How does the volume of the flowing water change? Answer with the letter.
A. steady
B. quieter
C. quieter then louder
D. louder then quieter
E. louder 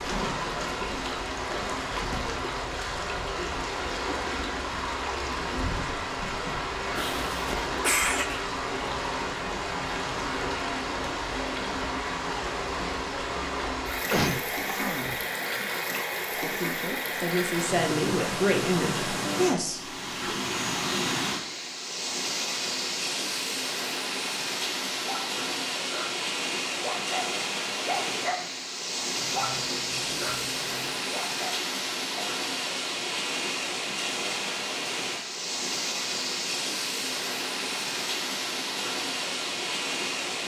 A.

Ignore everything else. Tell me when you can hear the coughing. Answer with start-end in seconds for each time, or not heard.
7.0-8.4, 14.1-15.2, 29.1-31.1.